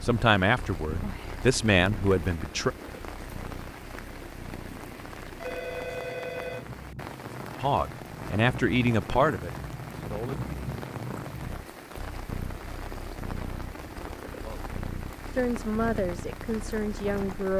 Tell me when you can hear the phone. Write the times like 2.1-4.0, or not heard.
5.4-6.7.